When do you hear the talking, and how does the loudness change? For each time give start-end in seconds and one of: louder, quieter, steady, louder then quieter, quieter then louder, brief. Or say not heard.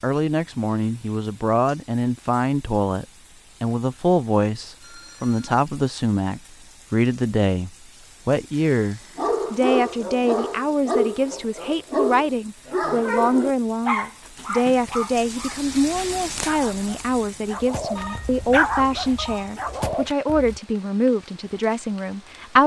0.0-22.6 steady.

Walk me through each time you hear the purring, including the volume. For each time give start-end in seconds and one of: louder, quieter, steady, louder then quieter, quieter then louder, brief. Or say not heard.
not heard.